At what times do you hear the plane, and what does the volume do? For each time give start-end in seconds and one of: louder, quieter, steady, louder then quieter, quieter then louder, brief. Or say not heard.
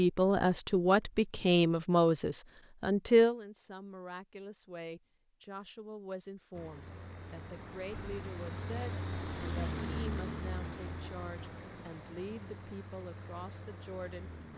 6.5-14.5 louder then quieter.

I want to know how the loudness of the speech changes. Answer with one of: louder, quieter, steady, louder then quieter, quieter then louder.
quieter.